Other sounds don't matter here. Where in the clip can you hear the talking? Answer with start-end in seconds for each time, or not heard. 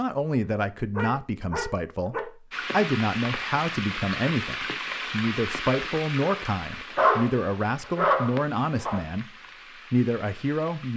0.0-10.9.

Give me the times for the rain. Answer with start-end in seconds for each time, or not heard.
2.5-10.9.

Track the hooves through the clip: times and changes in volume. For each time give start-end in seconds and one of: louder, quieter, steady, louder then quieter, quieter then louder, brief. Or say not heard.
not heard.